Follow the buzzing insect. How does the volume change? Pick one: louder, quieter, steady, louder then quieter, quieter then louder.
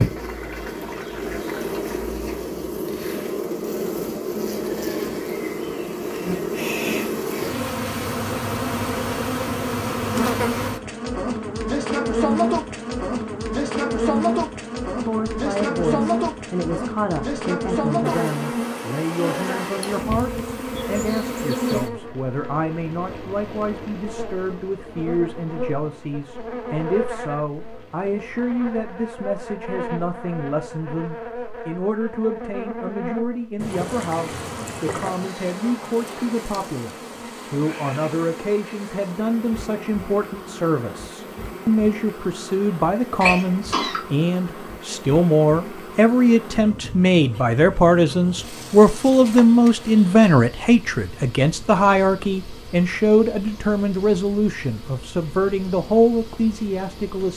quieter.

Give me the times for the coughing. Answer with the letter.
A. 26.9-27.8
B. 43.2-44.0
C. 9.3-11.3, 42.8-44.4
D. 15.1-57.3
B.